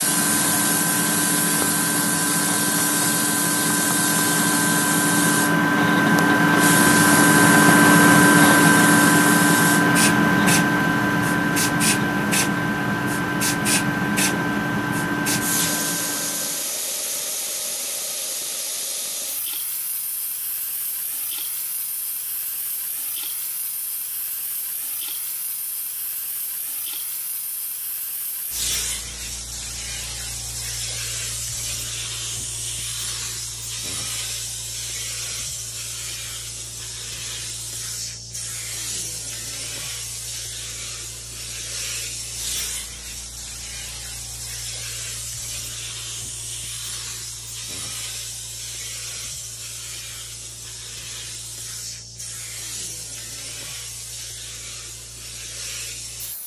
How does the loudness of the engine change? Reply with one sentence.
The loudness of the engine goes up, then down.